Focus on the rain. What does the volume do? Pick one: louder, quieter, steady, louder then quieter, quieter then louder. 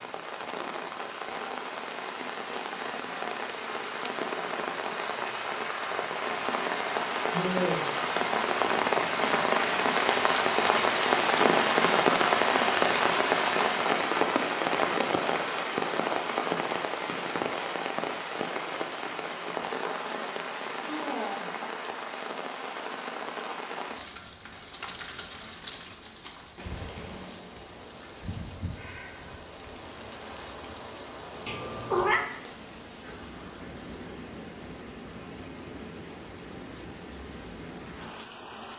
louder then quieter.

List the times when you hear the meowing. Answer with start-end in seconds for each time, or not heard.
31.4-32.2.